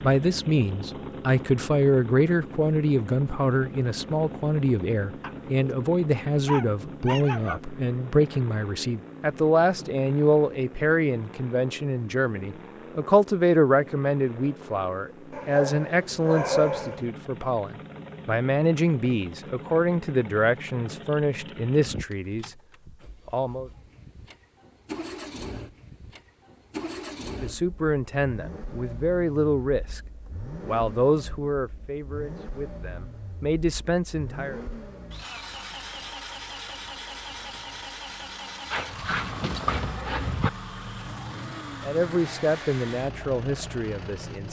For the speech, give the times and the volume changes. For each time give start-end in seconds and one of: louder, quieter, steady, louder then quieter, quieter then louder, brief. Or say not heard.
0.0-22.5 steady
23.2-23.7 brief
27.4-30.0 brief
30.6-34.6 quieter then louder
41.8-44.4 brief.